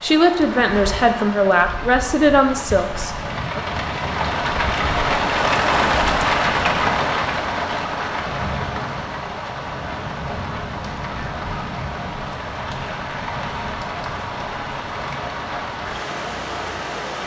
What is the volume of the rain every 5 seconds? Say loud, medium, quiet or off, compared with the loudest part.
medium, loud, medium, medium.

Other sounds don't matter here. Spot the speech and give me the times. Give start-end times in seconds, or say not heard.
0.0-3.6.